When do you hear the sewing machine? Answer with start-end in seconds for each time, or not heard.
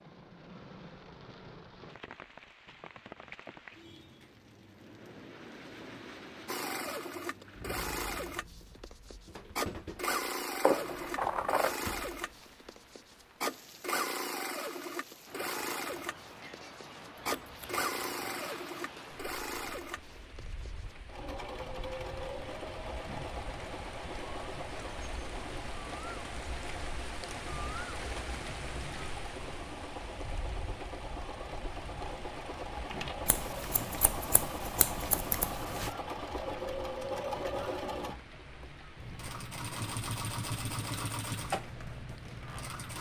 6.5-42.9.